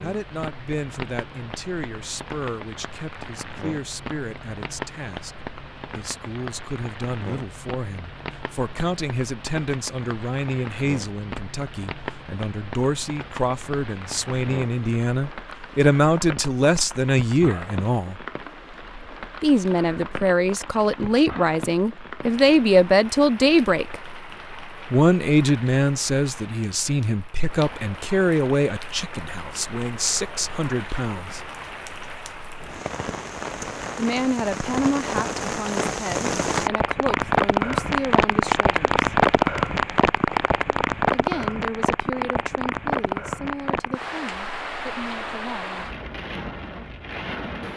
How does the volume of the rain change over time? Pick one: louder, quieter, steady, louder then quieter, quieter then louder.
louder.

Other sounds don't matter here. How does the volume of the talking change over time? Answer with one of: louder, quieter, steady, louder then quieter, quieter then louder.
louder then quieter.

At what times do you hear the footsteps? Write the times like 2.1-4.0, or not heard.
not heard.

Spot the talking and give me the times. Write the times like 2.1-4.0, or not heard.
0.0-5.3, 6.0-18.2, 19.4-24.0, 24.9-31.4, 34.0-39.0, 41.1-45.9.